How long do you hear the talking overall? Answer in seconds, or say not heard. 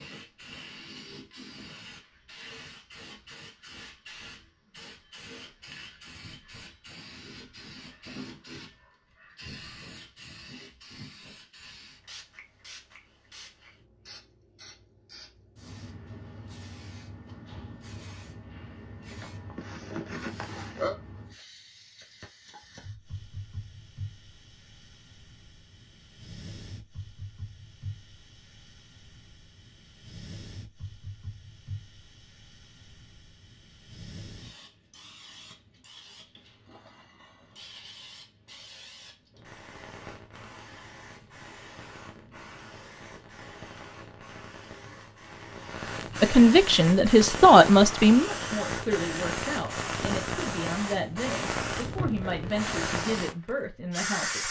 8 s.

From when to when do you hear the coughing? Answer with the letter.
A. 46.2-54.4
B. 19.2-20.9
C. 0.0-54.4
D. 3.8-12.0
B.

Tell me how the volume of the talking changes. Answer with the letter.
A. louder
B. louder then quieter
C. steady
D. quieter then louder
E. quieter
E.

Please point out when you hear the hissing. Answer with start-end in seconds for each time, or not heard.
0.0-54.4.